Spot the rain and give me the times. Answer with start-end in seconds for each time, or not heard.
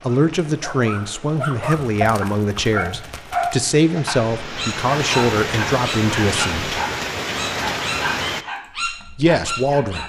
0.0-8.4.